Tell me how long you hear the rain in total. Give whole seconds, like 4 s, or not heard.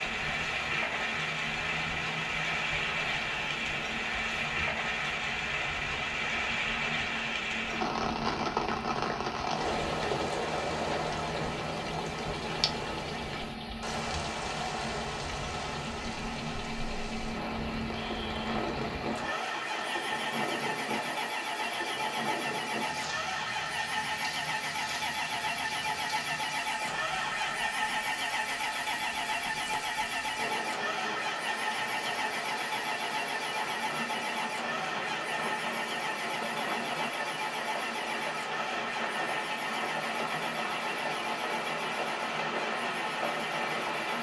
44 s.